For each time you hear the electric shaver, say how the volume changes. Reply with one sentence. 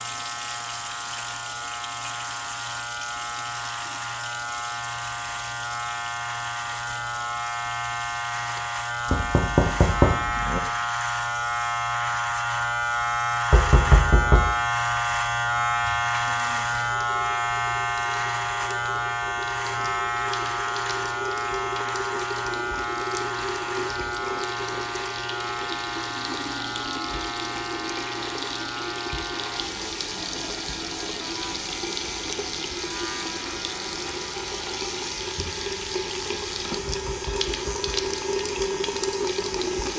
You can hear the electric shaver from 0.0 to 39.9 s, getting louder then quieter.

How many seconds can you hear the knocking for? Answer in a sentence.
You can hear the knocking for 4 seconds altogether.